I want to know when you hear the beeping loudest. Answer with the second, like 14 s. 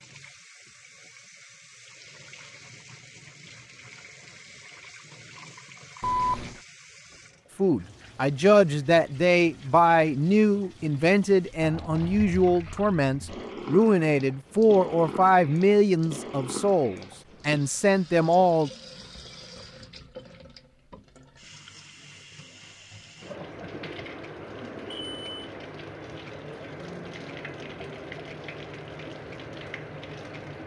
6 s.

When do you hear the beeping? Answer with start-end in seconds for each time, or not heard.
6.0-6.6, 24.9-25.4.